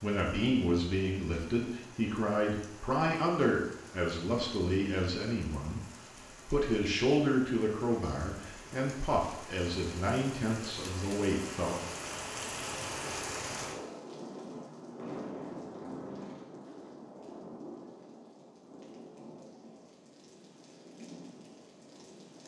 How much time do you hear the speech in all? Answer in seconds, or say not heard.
12 s.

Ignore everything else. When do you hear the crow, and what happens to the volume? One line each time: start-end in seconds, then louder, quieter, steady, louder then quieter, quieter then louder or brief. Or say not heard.
not heard.